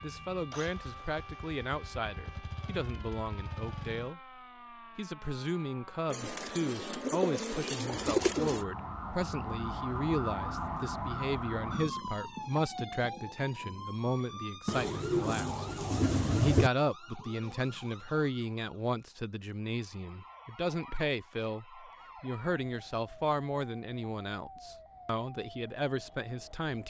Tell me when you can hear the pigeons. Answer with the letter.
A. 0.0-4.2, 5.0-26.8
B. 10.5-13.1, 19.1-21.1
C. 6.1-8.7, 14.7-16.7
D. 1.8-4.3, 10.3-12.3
C.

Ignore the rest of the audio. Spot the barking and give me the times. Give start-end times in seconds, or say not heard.
15.2-16.1.